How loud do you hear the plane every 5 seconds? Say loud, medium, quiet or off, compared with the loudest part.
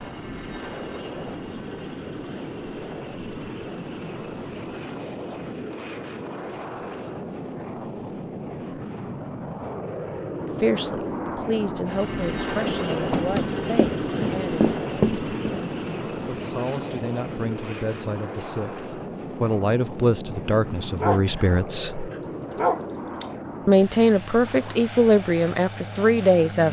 medium, medium, loud, loud, medium, medium.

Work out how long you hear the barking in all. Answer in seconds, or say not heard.
2 s.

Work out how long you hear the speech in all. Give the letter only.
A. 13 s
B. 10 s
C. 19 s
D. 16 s
A.